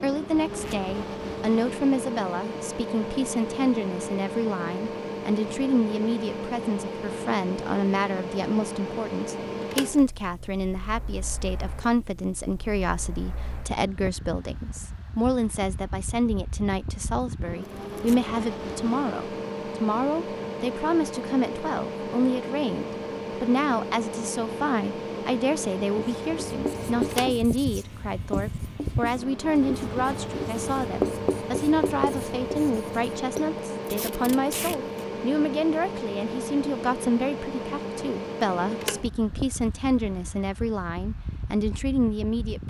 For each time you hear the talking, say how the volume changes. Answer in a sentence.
You can hear the talking from 0.0 to 42.6 s, at a steady volume.